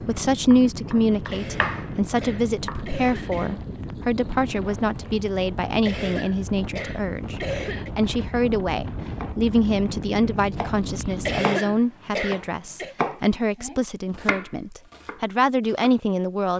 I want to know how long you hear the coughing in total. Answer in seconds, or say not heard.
6 s.